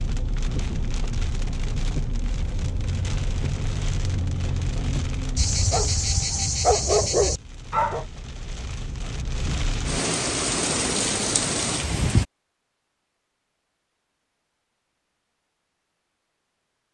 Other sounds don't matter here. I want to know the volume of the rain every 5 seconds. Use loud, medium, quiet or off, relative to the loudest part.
medium, medium, loud, off.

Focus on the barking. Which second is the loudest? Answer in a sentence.
The volume of the barking peaks at 7 seconds.